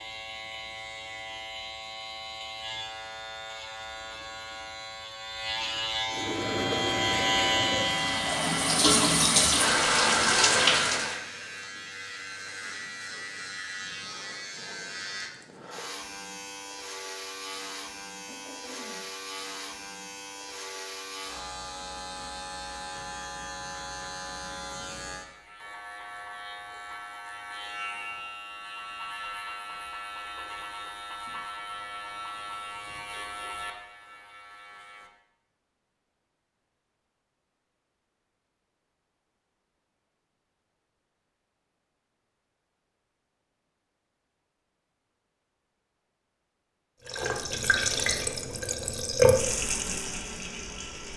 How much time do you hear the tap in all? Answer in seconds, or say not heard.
9 s.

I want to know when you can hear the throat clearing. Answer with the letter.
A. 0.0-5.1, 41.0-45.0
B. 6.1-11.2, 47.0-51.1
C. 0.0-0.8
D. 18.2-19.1
D.